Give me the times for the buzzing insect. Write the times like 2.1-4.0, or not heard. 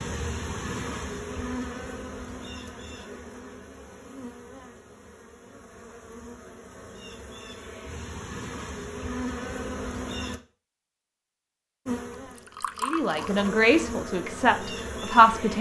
0.0-10.4, 11.8-15.5.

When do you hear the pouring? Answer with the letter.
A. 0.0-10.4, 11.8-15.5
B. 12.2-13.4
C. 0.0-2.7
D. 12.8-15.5
B.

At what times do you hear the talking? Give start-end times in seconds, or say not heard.
12.8-15.5.